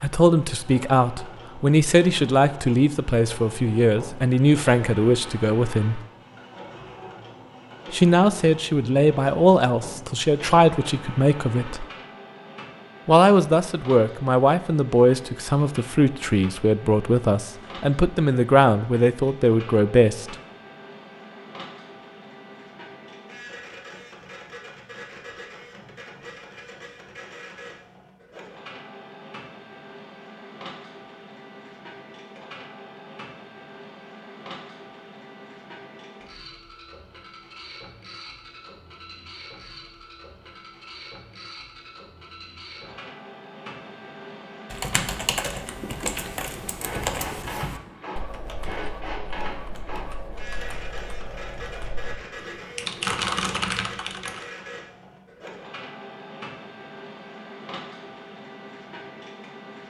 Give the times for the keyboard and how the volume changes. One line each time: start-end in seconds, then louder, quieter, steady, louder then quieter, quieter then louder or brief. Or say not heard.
44.7-54.5 quieter then louder.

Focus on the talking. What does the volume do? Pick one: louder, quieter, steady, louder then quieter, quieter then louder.
steady.